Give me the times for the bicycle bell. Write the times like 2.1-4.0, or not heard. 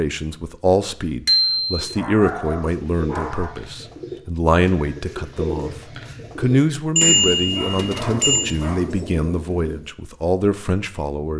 1.2-1.9, 7.0-8.6.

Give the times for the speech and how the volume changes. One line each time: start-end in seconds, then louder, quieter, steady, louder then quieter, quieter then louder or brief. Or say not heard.
0.0-11.3 steady.